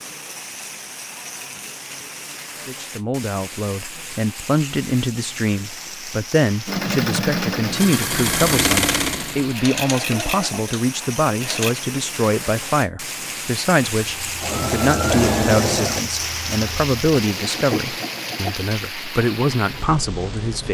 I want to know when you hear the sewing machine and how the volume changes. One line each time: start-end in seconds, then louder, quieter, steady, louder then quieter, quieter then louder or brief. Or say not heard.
6.7-11.8 quieter
14.2-18.6 quieter then louder.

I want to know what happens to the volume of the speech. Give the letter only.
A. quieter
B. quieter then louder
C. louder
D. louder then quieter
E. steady
E.